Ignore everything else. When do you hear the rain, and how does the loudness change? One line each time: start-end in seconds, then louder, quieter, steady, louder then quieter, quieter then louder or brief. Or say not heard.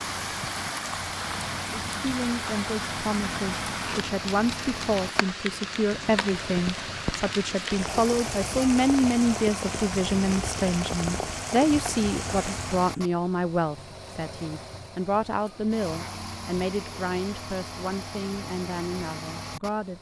0.0-13.1 steady.